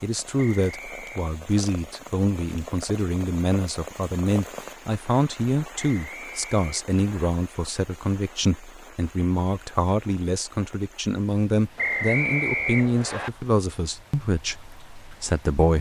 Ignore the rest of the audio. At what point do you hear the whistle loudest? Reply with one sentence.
The volume of the whistle peaks at 12 seconds.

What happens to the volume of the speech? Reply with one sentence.
The loudness of the speech stays about the same.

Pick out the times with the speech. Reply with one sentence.
You can hear the speech from 0.0 to 15.7 s.